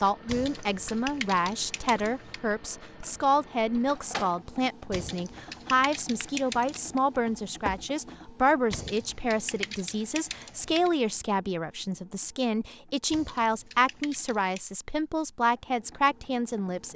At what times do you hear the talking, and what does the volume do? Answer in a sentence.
The talking can be heard from 0.0 to 16.9 s, at a steady volume.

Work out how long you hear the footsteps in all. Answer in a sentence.
The footsteps can be heard for 2 seconds in total.